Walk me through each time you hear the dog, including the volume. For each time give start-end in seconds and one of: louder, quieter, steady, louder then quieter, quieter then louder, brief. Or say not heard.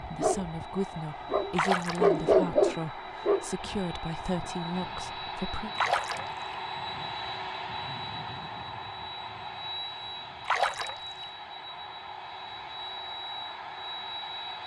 0.0-4.5 louder then quieter.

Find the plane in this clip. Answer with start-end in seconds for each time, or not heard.
0.0-14.6.